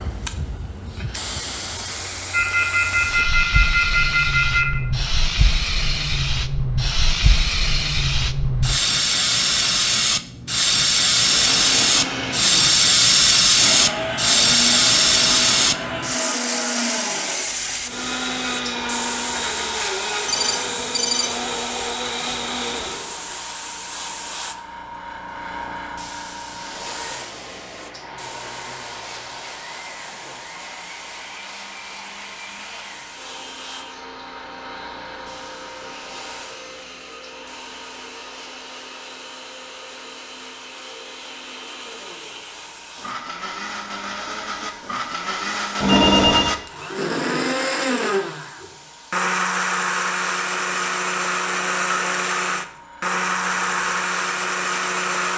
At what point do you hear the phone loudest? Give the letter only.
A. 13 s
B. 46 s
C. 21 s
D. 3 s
B.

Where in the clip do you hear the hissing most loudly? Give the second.
13 s.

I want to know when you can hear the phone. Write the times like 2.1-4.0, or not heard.
2.3-4.8, 20.2-21.6, 45.8-46.5.